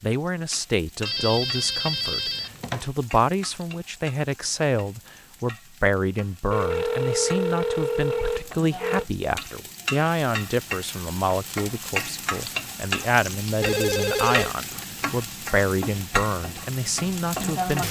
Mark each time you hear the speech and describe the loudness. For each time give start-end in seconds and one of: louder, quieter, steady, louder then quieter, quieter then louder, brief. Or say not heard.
0.0-17.8 steady.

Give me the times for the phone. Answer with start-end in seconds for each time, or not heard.
1.1-2.9, 6.5-9.1, 13.6-14.5.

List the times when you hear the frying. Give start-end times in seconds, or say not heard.
0.0-17.8.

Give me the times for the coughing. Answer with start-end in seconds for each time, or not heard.
not heard.